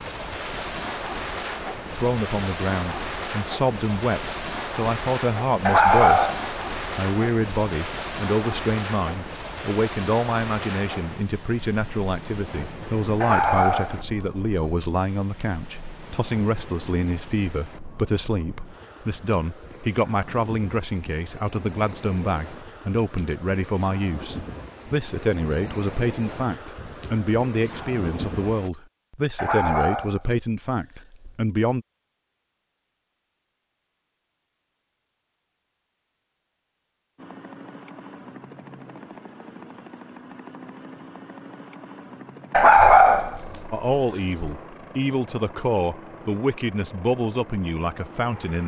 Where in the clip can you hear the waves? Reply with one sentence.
The waves can be heard from 0.0 to 28.7 s.